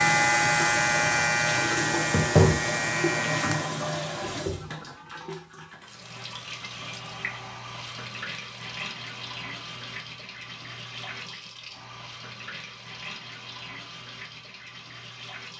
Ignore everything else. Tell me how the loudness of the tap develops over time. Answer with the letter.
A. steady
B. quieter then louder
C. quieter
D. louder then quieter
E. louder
C.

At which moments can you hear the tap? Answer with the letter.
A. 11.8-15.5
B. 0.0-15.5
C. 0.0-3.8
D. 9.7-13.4
B.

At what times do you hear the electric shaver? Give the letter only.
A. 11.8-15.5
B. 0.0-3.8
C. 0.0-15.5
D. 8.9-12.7
B.